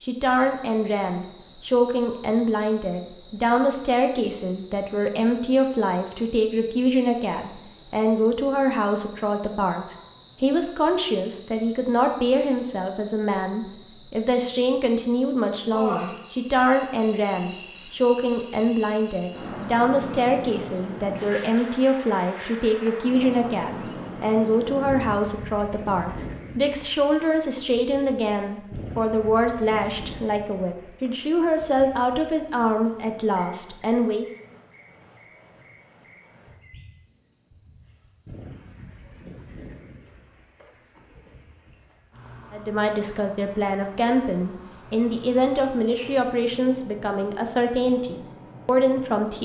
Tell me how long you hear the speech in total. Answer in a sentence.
The speech can be heard for 41 seconds in total.